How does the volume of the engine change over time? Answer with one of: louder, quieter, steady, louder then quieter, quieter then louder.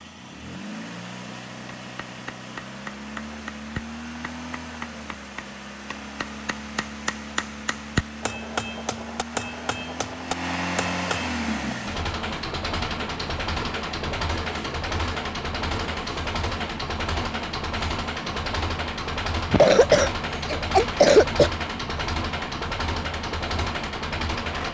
louder.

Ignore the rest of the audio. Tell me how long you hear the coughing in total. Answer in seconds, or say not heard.
2 s.